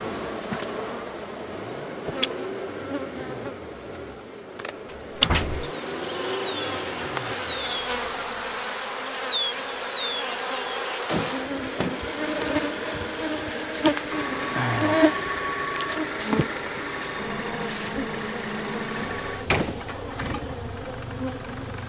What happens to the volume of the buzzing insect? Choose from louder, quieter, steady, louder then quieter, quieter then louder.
louder then quieter.